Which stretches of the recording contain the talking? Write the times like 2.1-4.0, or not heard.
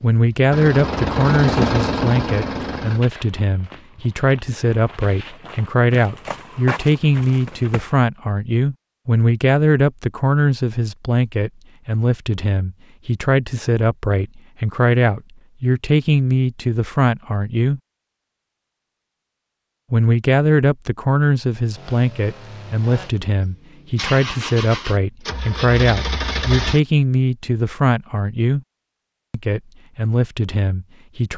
0.0-17.8, 19.9-28.6, 29.3-31.3.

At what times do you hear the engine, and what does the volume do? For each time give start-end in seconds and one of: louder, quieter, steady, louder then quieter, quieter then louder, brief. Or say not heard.
0.1-3.0 brief
21.7-26.8 louder.